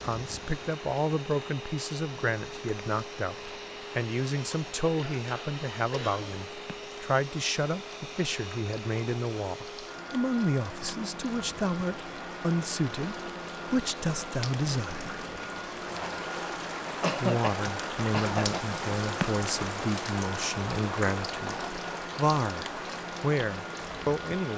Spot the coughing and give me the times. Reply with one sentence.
You can hear the coughing from 5.0 to 6.3 s and from 17.0 to 18.8 s.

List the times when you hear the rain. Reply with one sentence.
The rain can be heard from 0.0 to 24.5 s.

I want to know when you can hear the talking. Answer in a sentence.
The talking can be heard from 0.0 to 15.1 s and from 17.2 to 24.5 s.